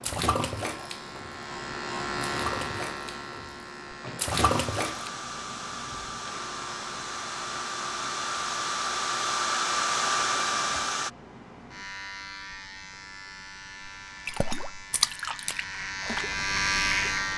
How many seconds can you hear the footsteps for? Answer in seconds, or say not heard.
not heard.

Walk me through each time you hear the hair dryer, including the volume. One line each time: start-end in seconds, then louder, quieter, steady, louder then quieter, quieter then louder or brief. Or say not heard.
4.3-11.1 louder.